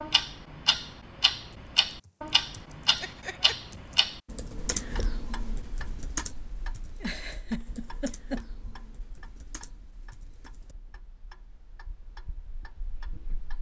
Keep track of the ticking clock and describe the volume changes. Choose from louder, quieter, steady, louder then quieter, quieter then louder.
quieter.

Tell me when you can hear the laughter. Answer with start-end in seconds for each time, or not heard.
3.0-3.5, 7.0-8.4.